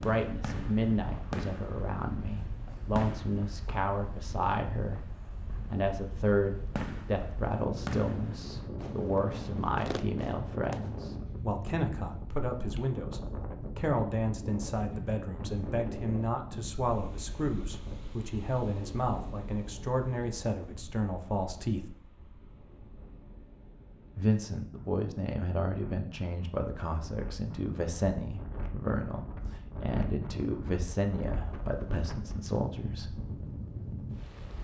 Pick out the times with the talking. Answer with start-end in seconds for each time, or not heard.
0.0-21.9, 24.1-33.1.